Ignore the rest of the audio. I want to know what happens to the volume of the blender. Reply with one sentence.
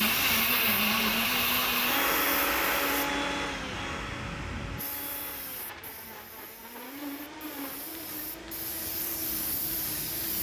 The loudness of the blender goes down.